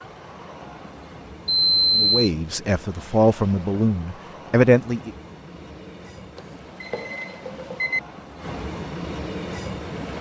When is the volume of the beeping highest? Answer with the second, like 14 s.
2 s.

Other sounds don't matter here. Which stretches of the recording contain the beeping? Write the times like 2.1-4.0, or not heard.
1.4-2.3, 6.3-8.0.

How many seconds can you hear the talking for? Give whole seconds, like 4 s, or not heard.
3 s.